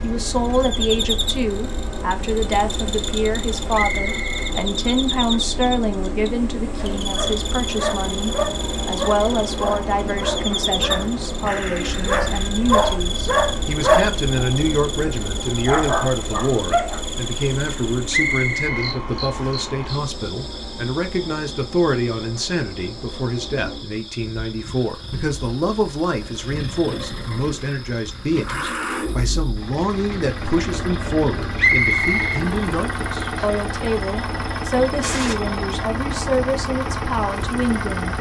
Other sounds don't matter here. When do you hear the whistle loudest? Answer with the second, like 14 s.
32 s.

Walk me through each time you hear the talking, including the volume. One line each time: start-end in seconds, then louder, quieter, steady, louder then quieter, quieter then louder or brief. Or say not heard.
0.0-38.1 steady.